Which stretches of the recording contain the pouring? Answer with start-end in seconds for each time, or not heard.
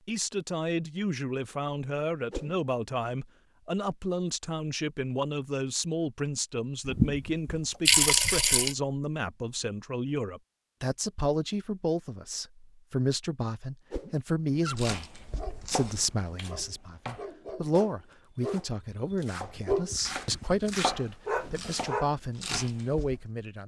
6.8-8.8.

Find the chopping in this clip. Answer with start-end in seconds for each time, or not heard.
14.8-23.2.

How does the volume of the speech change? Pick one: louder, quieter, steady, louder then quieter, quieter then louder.
steady.